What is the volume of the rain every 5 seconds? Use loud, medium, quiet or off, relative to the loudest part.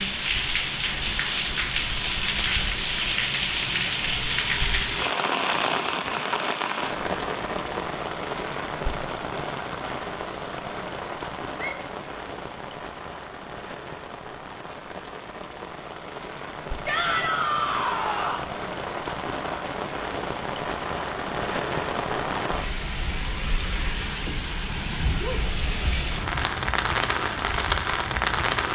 loud, loud, medium, medium, loud, loud.